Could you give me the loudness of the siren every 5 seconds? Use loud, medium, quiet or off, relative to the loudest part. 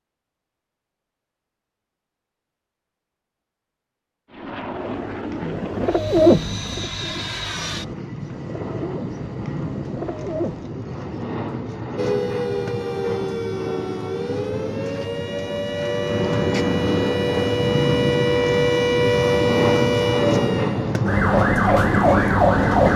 off, off, medium, loud, loud.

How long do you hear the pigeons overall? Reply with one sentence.
The pigeons can be heard for 6 seconds in total.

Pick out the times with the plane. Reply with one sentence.
The plane can be heard from 4.3 to 22.9 s.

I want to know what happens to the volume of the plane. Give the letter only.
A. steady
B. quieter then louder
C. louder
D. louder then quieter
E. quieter
C.